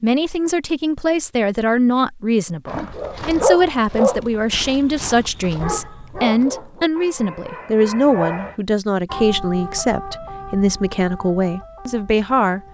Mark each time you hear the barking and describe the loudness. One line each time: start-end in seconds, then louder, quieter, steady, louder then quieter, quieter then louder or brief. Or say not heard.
2.6-8.6 quieter.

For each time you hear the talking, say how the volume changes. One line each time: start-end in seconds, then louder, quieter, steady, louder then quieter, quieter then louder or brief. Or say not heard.
0.0-12.6 steady.